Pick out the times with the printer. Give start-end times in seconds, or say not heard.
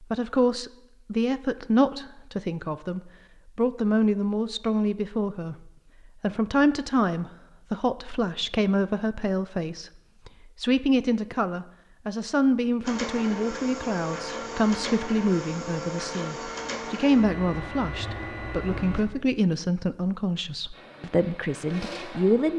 12.8-19.1, 20.7-22.5.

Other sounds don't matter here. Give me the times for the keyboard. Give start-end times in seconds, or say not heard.
not heard.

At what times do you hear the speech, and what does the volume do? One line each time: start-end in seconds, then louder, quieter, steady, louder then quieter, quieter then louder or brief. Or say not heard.
0.0-22.5 steady.